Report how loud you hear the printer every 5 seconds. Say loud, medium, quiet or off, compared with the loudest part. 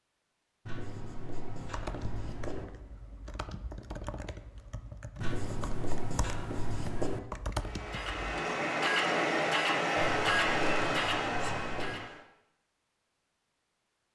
off, loud, loud.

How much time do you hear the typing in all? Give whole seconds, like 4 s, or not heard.
7 s.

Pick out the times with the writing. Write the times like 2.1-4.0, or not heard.
0.7-2.6, 5.2-7.2, 10.2-12.0.